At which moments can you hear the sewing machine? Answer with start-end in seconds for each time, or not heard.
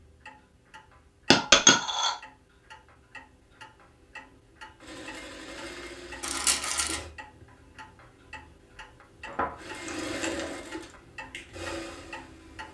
4.8-7.1, 9.6-12.7.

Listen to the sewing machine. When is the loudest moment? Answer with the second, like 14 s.
10 s.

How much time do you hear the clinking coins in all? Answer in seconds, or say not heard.
3 s.